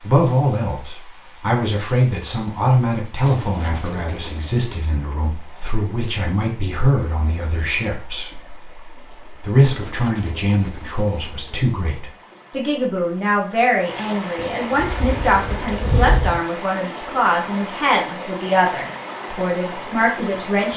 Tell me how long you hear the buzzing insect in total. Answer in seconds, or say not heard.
2 s.